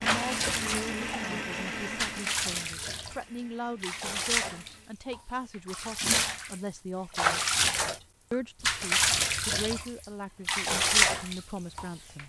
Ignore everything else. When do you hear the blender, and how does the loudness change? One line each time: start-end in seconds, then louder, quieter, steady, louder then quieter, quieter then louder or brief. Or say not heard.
0.0-5.0 quieter.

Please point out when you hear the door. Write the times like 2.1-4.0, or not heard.
not heard.